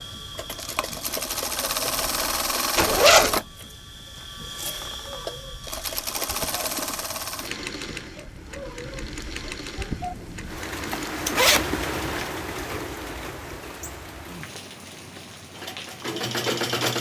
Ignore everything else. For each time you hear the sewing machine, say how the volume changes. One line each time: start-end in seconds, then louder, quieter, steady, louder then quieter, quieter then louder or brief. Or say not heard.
0.0-12.2 quieter
15.6-16.9 brief.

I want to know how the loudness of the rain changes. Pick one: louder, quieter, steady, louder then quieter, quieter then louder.
louder then quieter.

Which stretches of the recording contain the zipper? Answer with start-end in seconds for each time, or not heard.
2.8-3.4, 10.8-12.3.